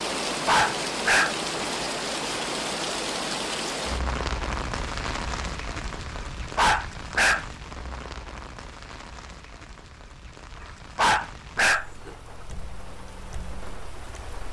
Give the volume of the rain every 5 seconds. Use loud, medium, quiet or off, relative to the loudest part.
loud, medium, quiet.